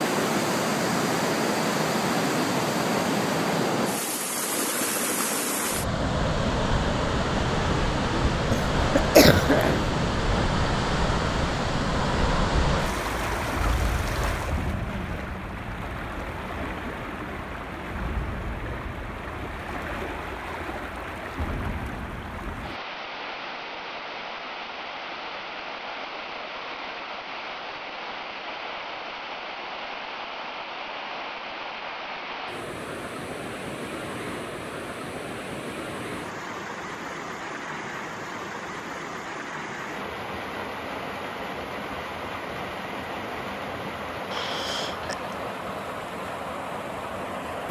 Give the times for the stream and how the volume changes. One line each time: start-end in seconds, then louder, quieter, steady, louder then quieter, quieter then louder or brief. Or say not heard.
0.0-47.6 quieter.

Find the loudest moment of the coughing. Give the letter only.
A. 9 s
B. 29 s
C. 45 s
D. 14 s
A.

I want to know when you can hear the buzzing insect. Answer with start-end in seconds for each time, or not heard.
not heard.